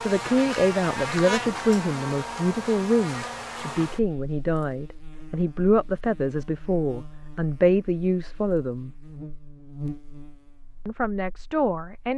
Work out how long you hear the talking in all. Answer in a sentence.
The talking can be heard for 10 seconds in total.